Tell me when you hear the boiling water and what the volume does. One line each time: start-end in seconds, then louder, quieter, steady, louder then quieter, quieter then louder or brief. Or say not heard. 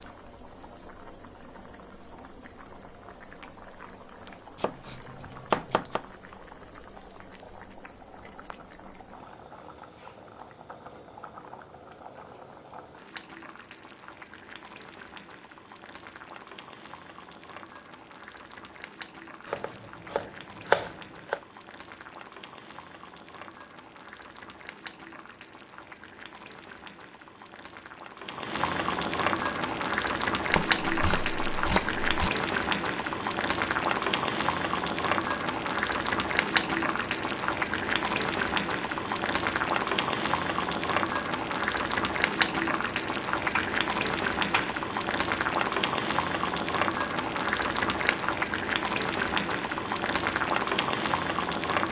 0.0-51.8 louder.